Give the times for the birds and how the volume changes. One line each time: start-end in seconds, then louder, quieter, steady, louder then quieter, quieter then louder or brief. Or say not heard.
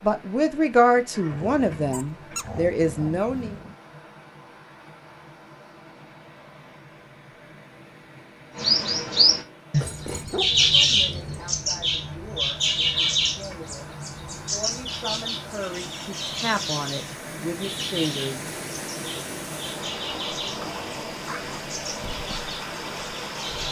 8.6-23.6 quieter.